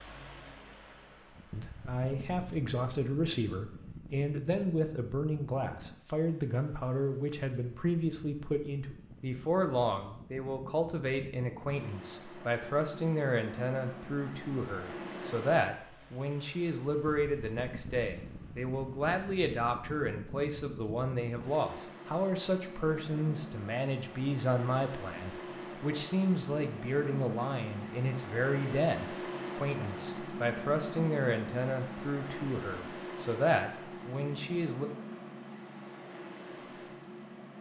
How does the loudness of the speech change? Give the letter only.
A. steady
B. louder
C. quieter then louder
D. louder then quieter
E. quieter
A.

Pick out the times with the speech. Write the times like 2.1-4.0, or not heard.
1.5-34.9.